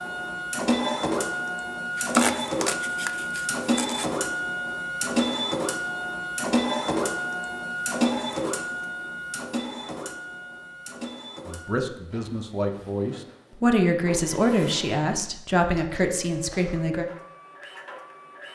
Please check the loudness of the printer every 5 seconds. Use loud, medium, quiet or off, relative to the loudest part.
loud, loud, quiet, quiet.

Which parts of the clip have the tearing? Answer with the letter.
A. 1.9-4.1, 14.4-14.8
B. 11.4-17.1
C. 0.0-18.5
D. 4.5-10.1
A.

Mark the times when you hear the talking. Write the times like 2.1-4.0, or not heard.
11.4-17.1.